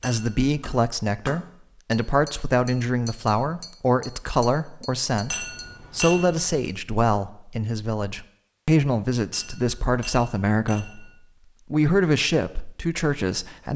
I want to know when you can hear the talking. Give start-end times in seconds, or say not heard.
0.0-11.1, 11.7-13.7.